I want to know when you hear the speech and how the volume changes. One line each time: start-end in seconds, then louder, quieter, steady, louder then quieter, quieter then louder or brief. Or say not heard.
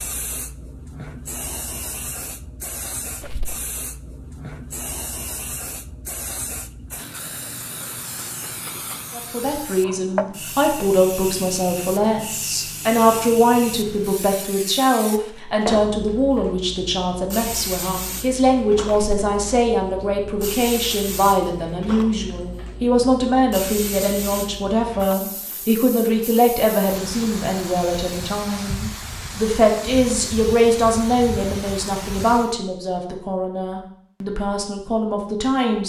9.2-35.8 steady.